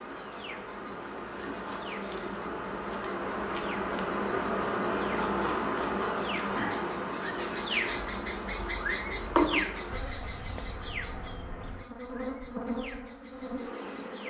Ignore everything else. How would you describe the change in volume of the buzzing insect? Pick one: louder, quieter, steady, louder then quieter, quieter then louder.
louder then quieter.